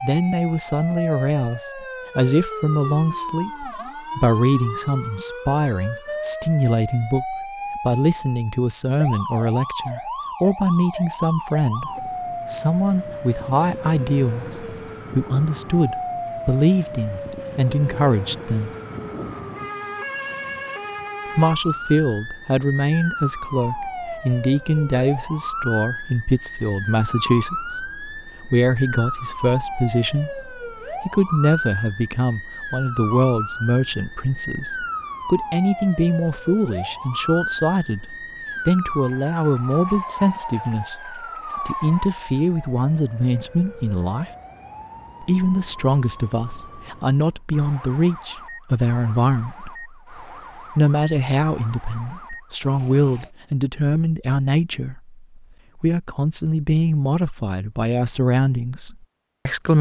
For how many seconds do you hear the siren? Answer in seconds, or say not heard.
53 s.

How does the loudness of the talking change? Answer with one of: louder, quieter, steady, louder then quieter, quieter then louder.
steady.